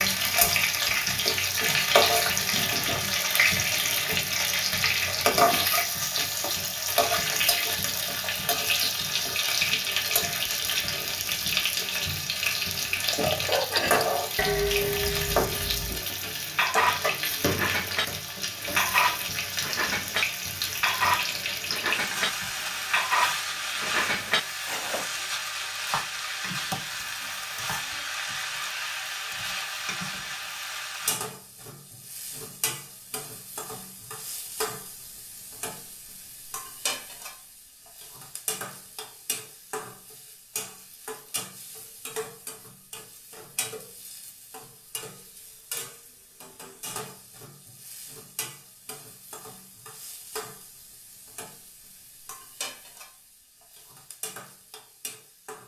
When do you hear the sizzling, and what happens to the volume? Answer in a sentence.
The sizzling can be heard from 0.0 to 55.6 s, getting quieter.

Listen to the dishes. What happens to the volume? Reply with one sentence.
The volume of the dishes stays about the same.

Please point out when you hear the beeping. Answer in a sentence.
The beeping can't be heard in this clip.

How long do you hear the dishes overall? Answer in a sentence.
You can hear the dishes for 12 seconds altogether.